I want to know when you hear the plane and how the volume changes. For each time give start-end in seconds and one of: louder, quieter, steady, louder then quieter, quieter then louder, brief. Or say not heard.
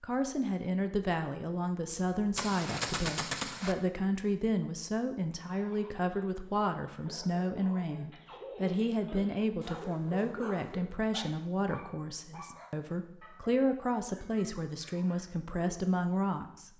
not heard.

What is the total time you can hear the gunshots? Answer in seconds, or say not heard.
2 s.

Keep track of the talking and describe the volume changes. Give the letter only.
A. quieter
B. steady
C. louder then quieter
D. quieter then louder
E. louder
B.